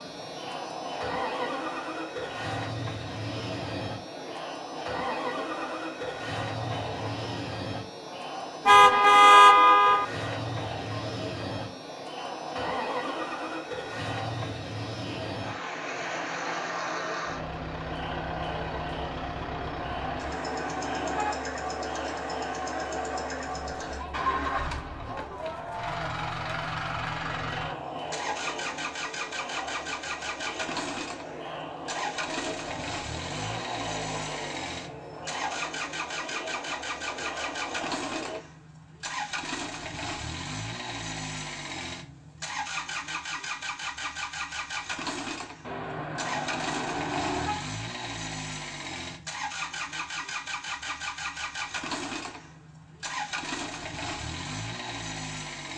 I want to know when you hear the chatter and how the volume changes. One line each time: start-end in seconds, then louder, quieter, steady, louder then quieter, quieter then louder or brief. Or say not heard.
0.0-38.4 steady.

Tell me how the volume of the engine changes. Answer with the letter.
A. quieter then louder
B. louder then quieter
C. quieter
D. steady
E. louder
D.